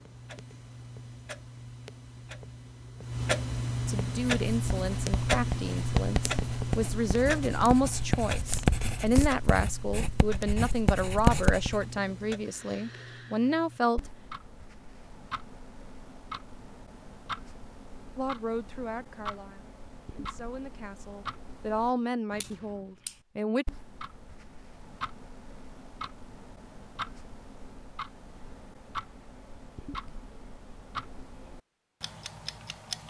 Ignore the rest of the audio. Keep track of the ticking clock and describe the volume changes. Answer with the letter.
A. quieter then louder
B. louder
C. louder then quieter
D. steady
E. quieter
E.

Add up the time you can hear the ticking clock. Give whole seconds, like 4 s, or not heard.
33 s.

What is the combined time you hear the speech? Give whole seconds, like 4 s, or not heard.
16 s.